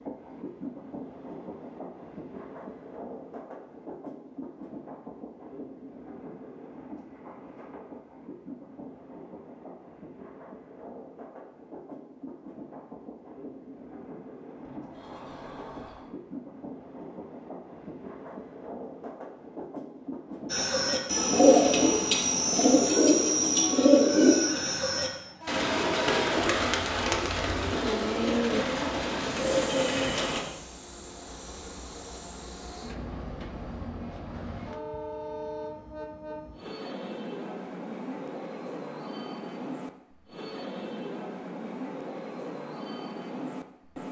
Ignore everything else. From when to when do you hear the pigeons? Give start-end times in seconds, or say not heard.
20.5-30.4.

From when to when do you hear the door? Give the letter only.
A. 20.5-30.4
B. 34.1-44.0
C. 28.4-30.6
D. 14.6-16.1
D.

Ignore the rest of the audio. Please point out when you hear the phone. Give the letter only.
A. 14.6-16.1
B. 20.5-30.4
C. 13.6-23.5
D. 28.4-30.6
D.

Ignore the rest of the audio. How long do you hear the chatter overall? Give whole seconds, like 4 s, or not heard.
not heard.